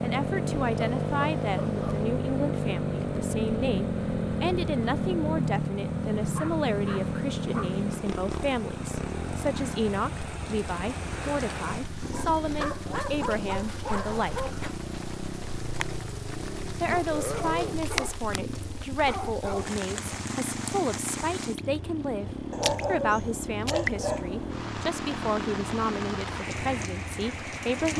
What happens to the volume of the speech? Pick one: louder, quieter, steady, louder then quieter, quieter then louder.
steady.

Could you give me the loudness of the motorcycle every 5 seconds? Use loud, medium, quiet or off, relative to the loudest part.
loud, loud, medium, medium, medium, medium.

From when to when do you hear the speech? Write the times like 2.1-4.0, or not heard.
0.0-14.6, 16.8-27.9.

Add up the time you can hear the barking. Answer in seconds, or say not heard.
10 s.